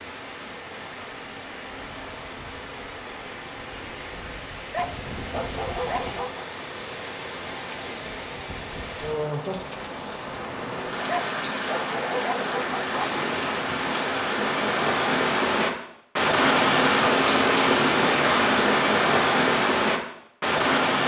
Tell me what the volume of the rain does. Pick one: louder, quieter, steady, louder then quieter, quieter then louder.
louder.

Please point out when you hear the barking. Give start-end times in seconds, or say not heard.
4.7-6.5, 11.1-12.9.